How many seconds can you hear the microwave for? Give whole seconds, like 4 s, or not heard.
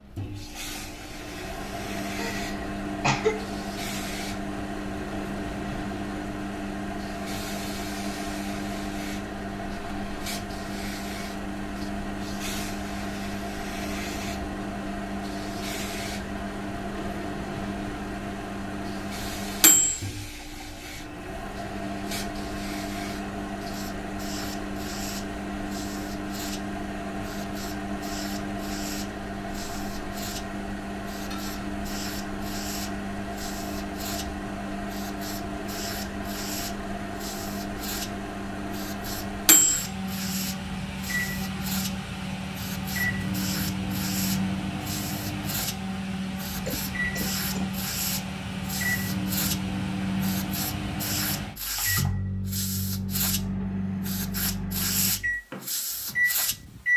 57 s.